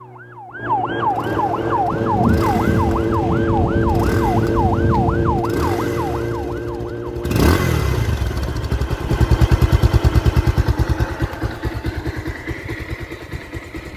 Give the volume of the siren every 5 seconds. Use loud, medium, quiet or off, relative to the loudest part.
loud, loud, off.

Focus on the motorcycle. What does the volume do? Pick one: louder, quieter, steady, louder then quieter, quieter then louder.
louder then quieter.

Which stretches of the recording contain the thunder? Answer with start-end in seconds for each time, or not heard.
1.9-5.5.